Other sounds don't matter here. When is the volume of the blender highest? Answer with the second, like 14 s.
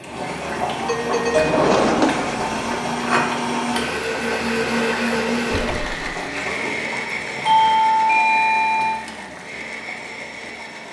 5 s.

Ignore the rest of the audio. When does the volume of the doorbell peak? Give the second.
8 s.